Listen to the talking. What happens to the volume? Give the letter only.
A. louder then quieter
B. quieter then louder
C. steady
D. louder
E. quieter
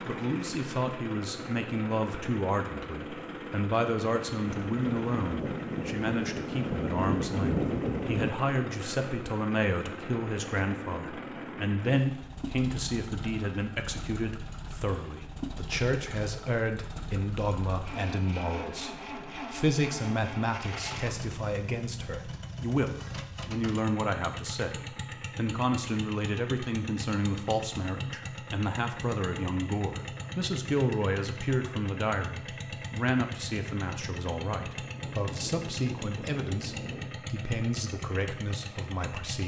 C.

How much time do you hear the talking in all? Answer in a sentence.
You can hear the talking for 39 seconds altogether.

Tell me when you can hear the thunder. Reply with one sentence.
The thunder can be heard from 4.5 to 8.3 s and from 34.6 to 37.1 s.